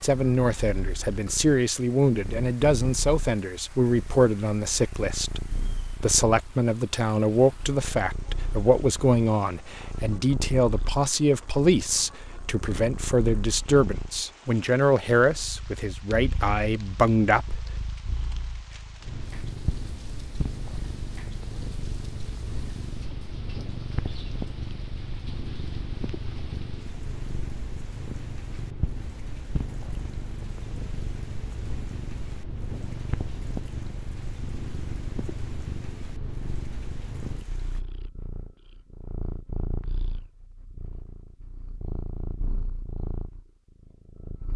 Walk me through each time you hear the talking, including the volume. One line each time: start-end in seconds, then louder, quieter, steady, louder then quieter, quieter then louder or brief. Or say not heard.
0.0-17.6 steady.